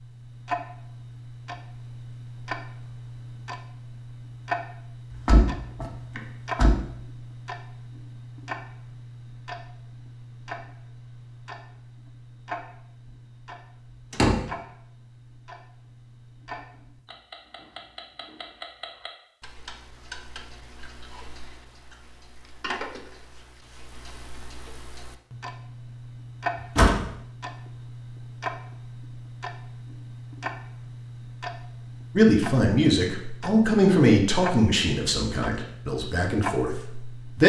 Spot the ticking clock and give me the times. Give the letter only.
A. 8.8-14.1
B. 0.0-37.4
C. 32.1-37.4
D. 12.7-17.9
B.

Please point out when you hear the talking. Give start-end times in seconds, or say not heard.
32.1-37.4.